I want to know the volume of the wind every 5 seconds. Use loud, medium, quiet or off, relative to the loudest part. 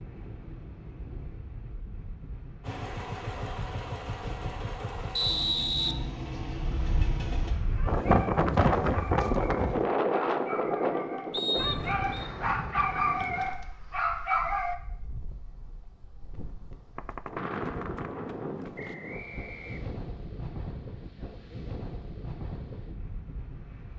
quiet, loud, medium, quiet, quiet.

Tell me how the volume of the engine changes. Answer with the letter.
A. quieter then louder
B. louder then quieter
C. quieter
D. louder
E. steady
E.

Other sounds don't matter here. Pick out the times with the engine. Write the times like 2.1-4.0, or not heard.
2.6-7.5.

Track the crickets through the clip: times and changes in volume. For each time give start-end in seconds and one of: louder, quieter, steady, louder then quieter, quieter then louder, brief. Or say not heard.
not heard.